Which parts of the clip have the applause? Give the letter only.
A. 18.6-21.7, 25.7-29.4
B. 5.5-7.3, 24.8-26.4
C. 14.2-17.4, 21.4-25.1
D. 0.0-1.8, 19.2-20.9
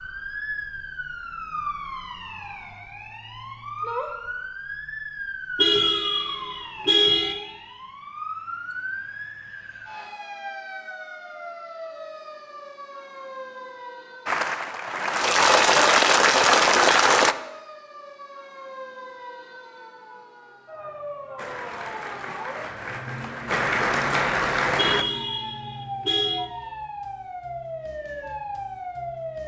C.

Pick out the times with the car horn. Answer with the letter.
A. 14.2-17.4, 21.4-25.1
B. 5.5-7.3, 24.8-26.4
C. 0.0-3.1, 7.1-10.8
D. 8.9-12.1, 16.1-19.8
B.